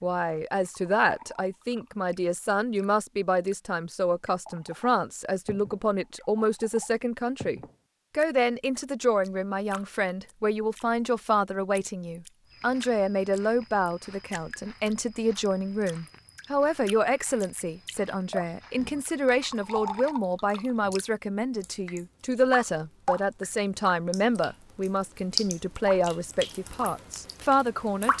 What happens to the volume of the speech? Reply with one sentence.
The volume of the speech stays about the same.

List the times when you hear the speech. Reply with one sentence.
The speech can be heard from 0.0 to 28.1 s.